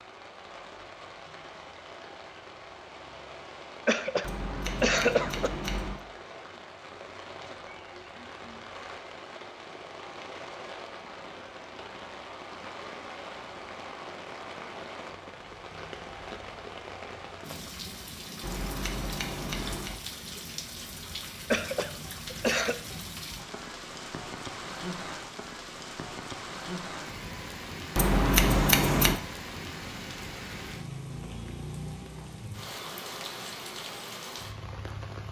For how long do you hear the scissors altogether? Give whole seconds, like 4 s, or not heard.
5 s.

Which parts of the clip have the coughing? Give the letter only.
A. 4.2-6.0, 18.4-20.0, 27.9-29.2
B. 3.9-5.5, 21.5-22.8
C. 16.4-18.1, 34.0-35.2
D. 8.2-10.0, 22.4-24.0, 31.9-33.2
B.